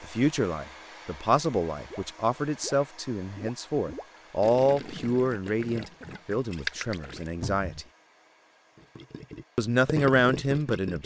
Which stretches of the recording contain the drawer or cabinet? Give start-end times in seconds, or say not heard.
7.4-7.8.